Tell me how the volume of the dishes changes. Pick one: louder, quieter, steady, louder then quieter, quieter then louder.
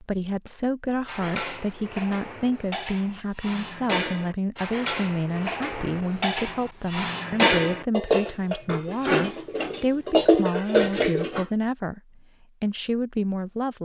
louder.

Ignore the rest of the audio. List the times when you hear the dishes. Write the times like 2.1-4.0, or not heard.
1.1-11.4.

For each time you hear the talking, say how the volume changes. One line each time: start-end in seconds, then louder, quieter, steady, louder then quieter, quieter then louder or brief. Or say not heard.
0.0-13.7 steady.